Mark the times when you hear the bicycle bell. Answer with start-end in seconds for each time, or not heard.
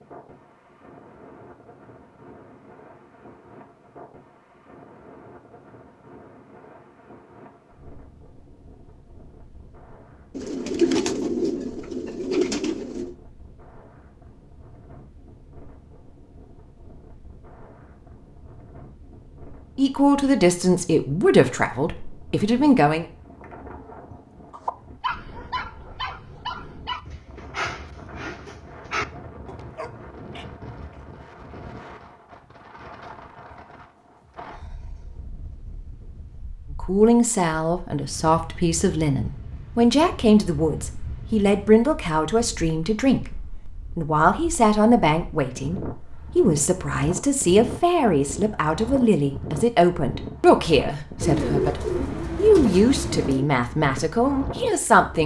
not heard.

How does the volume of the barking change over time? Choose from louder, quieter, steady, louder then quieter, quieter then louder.
quieter then louder.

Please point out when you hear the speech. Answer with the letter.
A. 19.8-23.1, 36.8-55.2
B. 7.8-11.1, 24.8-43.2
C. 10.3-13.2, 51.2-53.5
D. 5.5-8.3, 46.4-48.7
A.